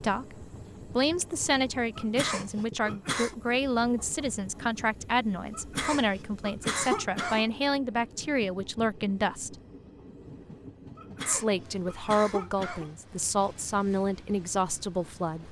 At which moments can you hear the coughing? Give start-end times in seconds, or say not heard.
1.9-3.4, 5.5-7.5, 10.9-12.9.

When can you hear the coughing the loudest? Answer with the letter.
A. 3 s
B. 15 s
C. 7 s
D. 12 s
C.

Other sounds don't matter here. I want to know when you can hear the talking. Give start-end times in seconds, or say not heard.
0.0-9.6, 11.2-15.4.